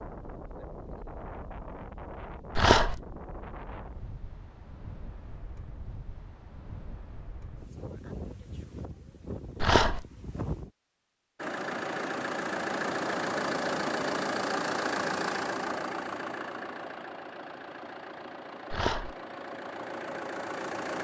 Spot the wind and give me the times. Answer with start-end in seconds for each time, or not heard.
0.0-10.7.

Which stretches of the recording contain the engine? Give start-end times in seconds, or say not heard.
11.3-20.9.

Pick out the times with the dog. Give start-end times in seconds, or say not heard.
2.5-3.0, 9.6-10.1, 18.7-19.1.